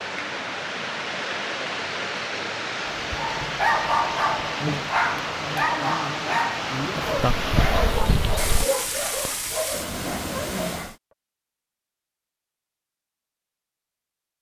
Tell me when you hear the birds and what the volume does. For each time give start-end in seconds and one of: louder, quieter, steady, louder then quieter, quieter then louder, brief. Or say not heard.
not heard.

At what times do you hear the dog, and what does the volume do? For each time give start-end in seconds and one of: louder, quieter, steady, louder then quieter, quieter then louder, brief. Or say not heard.
3.1-10.9 quieter.